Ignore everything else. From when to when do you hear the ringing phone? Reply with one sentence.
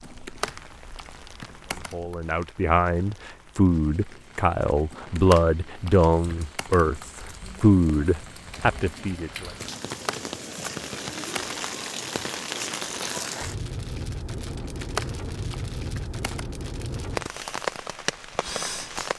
You can't hear the ringing phone here.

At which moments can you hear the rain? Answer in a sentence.
You can hear the rain from 0.0 to 19.1 s.